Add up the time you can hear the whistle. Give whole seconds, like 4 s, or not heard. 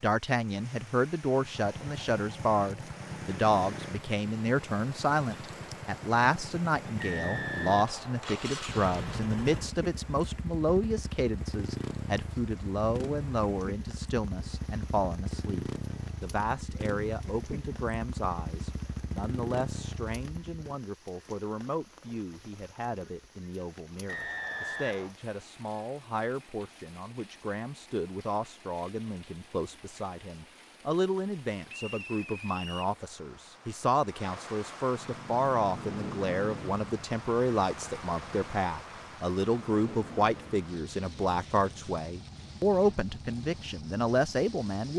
4 s.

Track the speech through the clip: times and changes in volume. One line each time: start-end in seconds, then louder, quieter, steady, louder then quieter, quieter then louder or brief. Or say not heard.
0.0-44.9 quieter then louder.